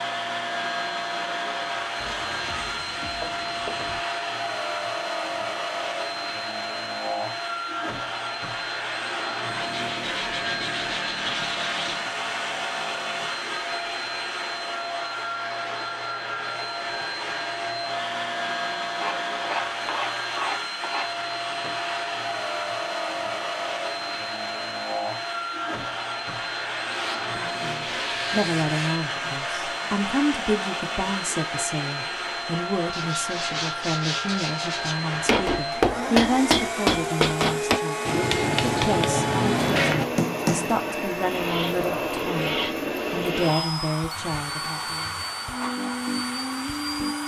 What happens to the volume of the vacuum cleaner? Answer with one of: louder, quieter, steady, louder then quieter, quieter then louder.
steady.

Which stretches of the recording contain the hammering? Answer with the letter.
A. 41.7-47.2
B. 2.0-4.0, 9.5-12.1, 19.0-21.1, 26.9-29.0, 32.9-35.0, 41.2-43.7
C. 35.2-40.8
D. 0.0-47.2
C.